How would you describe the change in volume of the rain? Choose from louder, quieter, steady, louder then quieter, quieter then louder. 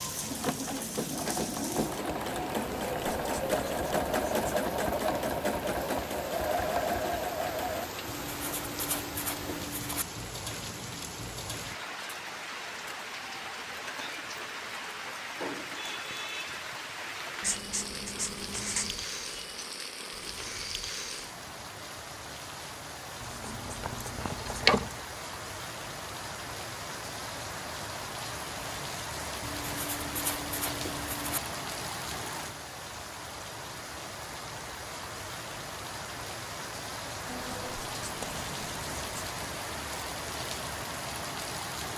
steady.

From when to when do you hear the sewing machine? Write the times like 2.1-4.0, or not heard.
0.0-7.9.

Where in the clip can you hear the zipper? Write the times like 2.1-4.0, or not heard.
24.2-24.9.